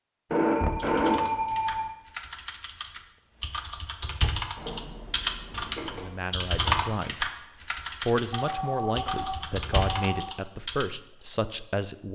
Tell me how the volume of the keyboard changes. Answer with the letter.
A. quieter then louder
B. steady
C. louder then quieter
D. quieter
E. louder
C.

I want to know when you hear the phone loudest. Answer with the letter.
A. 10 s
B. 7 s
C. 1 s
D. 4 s
C.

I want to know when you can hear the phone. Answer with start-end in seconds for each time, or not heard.
0.3-1.9, 4.5-6.1, 8.3-10.3.